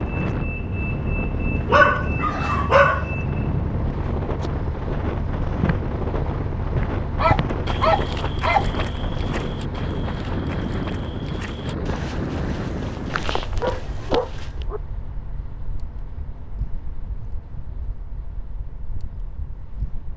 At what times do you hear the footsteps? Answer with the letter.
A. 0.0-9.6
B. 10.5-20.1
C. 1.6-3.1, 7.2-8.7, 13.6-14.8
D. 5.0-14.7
D.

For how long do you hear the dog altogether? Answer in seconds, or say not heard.
4 s.